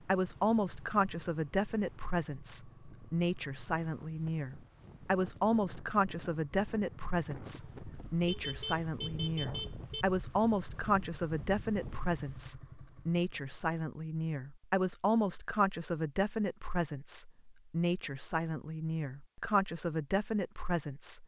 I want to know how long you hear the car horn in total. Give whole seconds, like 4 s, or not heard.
2 s.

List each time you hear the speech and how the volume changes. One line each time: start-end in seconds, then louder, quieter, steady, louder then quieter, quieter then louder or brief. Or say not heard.
0.0-21.2 steady.